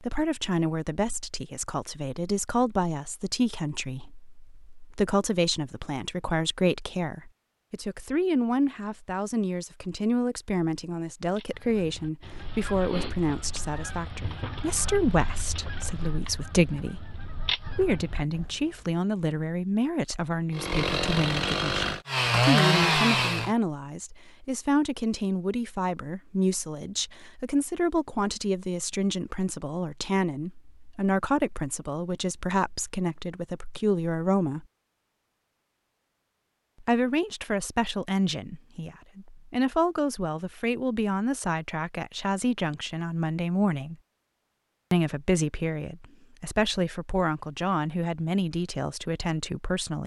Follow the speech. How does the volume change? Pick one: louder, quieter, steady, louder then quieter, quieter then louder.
steady.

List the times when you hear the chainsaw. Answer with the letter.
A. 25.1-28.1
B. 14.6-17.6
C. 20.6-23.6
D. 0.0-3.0
C.